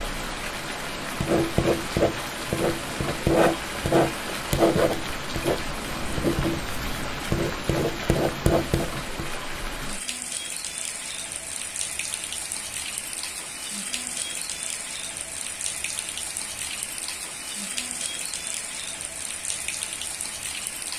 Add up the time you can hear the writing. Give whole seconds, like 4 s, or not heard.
8 s.